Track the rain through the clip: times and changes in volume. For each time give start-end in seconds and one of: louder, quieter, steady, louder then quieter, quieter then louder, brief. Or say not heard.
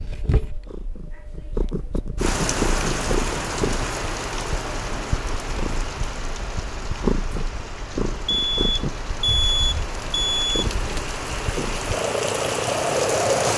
2.1-13.5 quieter then louder.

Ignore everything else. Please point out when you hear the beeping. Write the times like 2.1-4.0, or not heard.
8.2-10.7.